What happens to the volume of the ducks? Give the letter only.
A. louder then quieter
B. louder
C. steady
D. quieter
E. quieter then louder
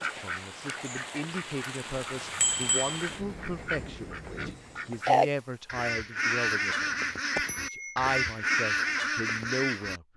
B.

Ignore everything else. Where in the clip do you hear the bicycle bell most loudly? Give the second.
3 s.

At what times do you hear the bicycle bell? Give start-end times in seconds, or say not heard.
2.4-3.0, 7.3-8.0.